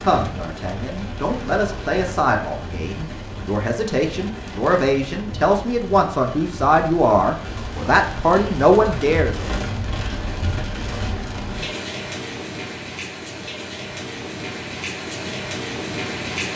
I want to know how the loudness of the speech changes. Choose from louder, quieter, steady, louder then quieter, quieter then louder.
louder.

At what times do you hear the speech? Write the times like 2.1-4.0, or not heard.
0.0-9.3.